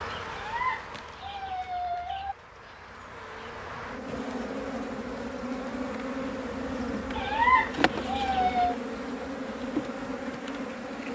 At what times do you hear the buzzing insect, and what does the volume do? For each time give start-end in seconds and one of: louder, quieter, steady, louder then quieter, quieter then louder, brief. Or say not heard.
0.0-11.1 louder.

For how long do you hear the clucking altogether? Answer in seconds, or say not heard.
4 s.